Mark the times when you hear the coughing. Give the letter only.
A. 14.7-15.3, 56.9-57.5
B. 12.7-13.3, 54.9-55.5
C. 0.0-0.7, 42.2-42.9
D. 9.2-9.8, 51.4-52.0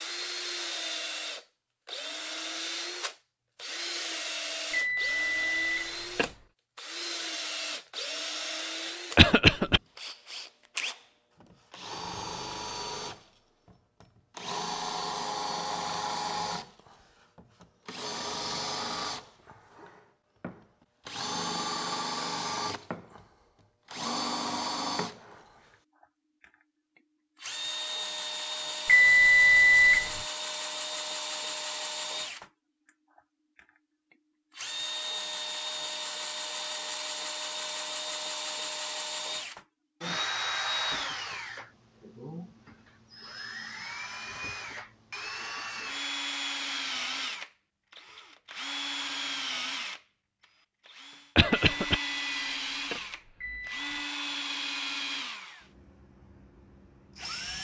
D.